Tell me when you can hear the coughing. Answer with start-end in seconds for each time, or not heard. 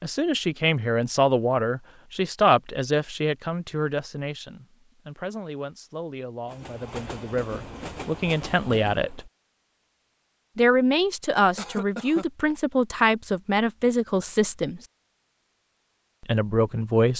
11.6-12.2.